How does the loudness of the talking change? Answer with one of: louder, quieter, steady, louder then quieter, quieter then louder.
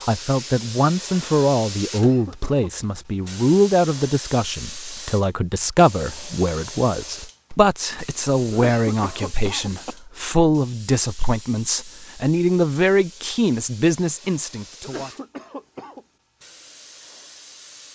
steady.